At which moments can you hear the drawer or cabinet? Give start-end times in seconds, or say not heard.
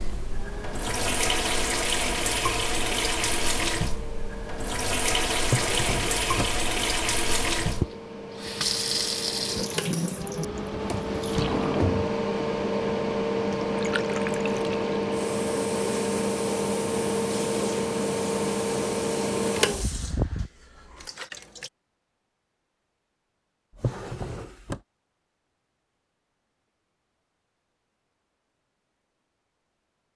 5.4-6.6, 10.8-12.1, 23.8-24.8.